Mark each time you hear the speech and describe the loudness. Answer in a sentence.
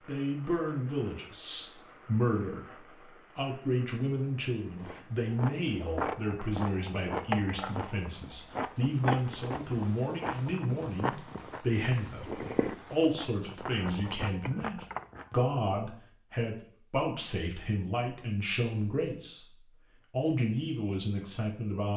The speech can be heard from 0.1 to 19.4 s, at a steady volume; and briefly from 20.1 to 21.9 s.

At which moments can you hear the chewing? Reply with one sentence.
You can hear the chewing from 4.8 to 15.3 s.